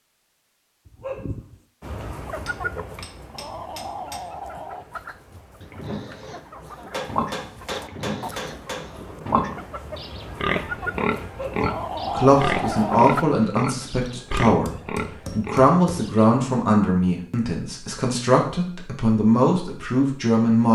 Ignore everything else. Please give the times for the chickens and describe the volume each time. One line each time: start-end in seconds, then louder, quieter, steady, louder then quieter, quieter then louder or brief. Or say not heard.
1.8-13.2 quieter then louder.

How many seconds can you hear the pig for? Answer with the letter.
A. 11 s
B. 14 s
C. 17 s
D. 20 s
A.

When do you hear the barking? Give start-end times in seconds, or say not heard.
0.8-1.6, 11.2-11.8.